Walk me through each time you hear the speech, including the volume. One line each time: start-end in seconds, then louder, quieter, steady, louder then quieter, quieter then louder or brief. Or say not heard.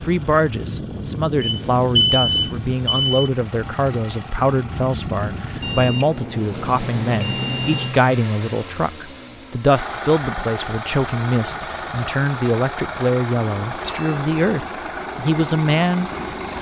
0.0-16.5 steady.